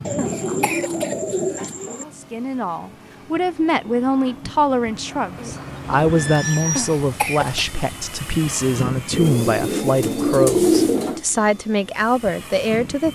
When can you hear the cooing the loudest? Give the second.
11 s.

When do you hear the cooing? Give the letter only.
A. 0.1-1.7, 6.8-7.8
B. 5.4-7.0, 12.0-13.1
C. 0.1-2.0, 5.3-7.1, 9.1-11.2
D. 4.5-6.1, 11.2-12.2
C.